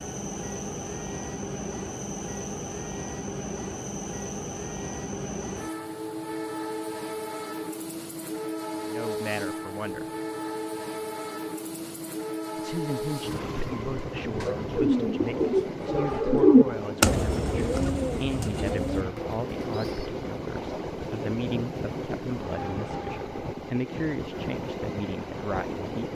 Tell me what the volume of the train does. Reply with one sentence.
The loudness of the train stays about the same.